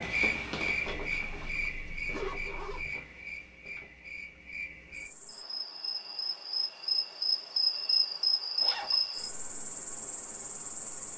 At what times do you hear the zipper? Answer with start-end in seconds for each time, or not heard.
0.8-2.9, 8.6-9.0.